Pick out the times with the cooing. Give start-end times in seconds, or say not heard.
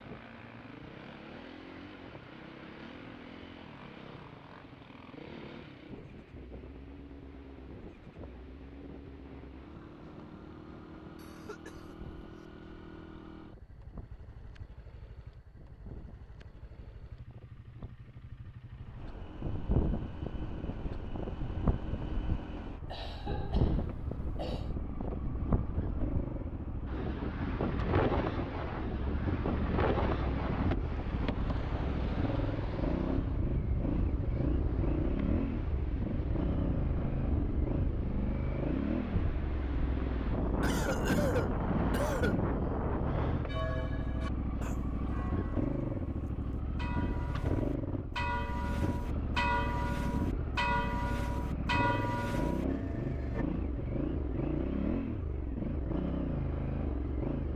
not heard.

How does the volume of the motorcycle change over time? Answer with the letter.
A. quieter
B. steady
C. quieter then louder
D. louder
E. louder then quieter
D.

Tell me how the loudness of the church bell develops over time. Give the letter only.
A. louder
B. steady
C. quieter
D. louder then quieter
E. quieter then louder
A.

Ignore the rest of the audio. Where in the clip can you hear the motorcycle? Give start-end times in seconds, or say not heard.
0.0-57.5.